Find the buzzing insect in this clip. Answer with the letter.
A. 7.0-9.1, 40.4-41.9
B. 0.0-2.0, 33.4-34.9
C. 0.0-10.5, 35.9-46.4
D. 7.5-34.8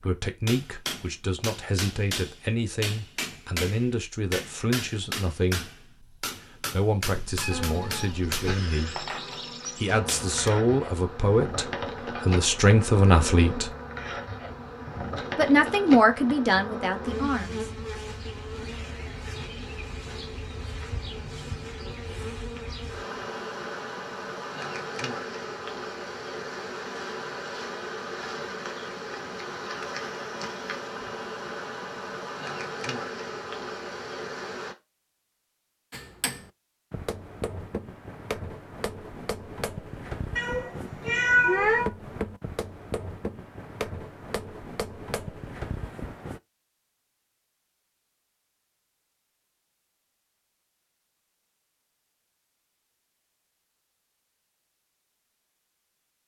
D.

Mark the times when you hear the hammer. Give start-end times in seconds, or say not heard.
0.0-10.5, 35.9-46.4.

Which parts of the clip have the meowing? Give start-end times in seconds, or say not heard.
7.0-9.1, 40.4-41.9.